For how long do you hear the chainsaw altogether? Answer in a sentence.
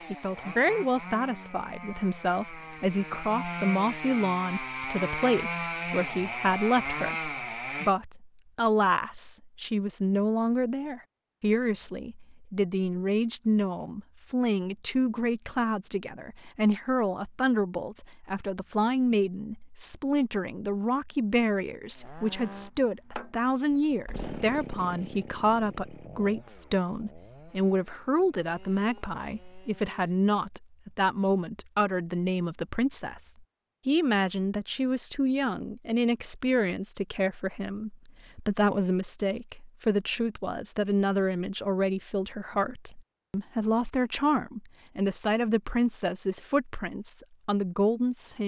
You can hear the chainsaw for 16 seconds altogether.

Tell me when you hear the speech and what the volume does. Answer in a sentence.
You can hear the speech from 0.1 to 48.4 s, at a steady volume.